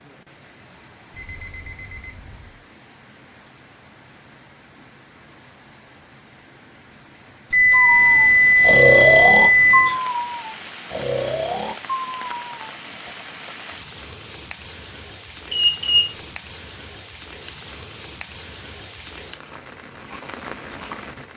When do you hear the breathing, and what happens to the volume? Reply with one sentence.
The breathing can be heard from 7.7 to 13.1 s, getting quieter.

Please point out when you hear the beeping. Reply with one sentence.
The beeping can be heard from 1.1 to 2.4 s, from 7.5 to 9.9 s and from 15.5 to 16.1 s.